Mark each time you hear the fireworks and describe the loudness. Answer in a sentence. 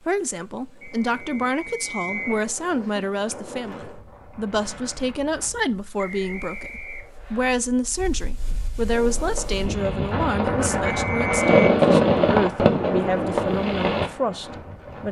You can hear the fireworks from 8.9 to 14.1 s, getting louder then quieter.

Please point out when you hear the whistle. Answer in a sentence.
You can hear the whistle from 0.8 to 2.5 s, from 6.0 to 7.5 s and from 10.8 to 11.8 s.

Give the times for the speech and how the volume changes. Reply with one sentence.
The speech can be heard from 0.1 to 15.0 s, at a steady volume.